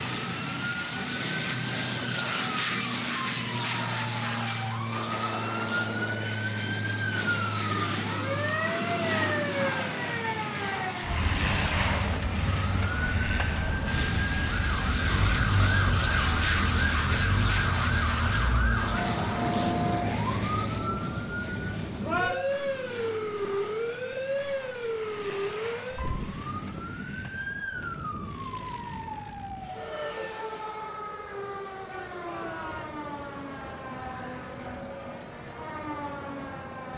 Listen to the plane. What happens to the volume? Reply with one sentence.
The loudness of the plane goes down.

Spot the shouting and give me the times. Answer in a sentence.
The shouting can be heard from 7.7 to 8.8 s and from 31.9 to 33.0 s.